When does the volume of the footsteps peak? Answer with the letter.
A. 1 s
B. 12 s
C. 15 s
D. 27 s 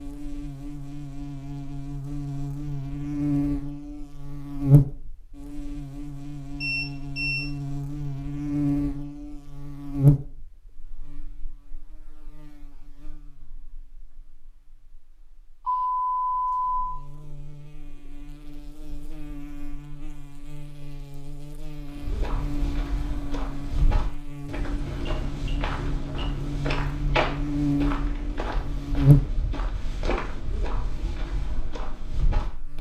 D.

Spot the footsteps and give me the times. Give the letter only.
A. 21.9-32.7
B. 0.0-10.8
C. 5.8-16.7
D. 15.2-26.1
A.